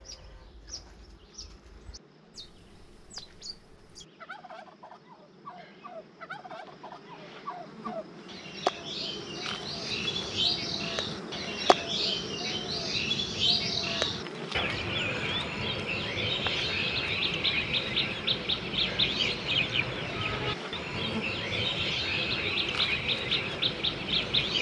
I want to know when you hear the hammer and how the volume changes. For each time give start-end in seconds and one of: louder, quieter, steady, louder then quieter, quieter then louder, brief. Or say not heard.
not heard.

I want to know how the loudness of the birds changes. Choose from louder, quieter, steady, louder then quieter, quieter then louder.
louder.